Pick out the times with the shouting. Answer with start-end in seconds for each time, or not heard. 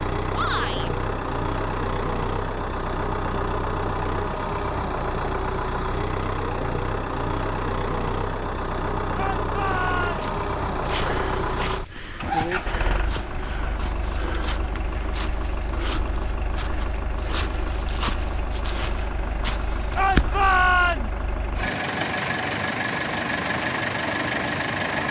0.3-0.9, 9.2-10.3, 19.9-21.4.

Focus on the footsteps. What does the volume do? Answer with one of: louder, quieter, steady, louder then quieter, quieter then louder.
steady.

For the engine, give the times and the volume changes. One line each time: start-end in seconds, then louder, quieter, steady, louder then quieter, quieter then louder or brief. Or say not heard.
0.0-25.0 quieter then louder.